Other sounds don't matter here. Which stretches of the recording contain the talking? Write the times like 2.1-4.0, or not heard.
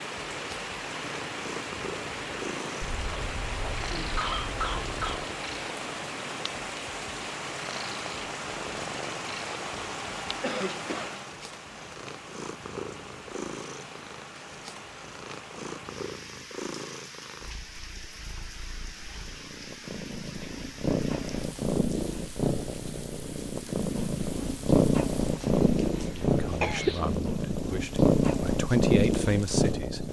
26.1-30.0.